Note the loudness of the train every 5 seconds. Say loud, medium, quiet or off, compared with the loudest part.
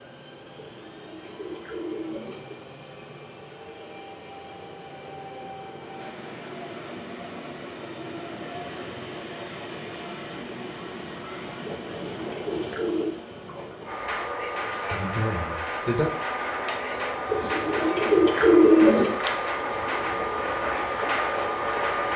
quiet, medium, medium, loud, loud.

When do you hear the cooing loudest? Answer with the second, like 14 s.
19 s.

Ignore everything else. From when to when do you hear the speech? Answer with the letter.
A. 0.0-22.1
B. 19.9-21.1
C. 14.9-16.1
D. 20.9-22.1
C.